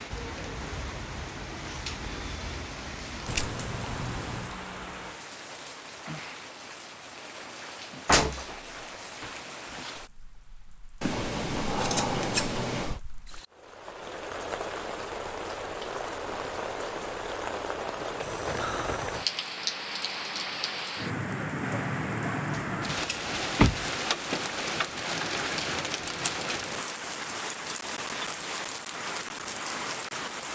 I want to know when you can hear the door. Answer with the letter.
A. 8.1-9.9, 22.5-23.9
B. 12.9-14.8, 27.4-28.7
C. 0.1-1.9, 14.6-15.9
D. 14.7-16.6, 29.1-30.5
A.